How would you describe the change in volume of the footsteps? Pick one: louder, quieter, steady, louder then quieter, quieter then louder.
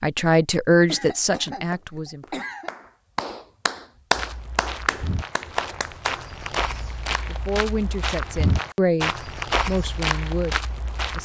louder.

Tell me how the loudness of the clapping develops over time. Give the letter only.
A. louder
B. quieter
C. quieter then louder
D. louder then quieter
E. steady
D.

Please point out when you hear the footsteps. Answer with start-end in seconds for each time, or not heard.
4.1-11.2.